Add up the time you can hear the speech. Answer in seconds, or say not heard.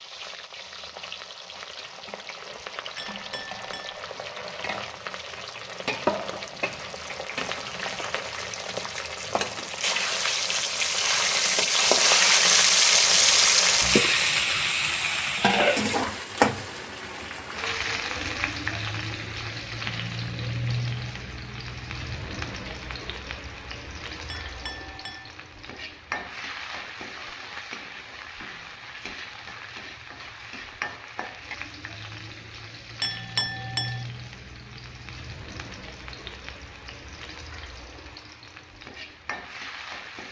not heard.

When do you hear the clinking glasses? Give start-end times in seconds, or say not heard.
3.0-4.0, 24.3-25.3, 33.0-34.0.